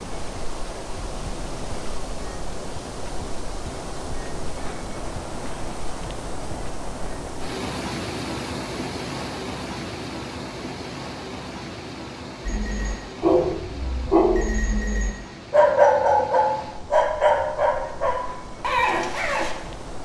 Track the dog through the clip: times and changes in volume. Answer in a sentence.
You can hear the dog from 12.4 to 19.6 s, getting louder then quieter.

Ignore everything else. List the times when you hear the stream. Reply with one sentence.
You can hear the stream from 0.0 to 20.0 s.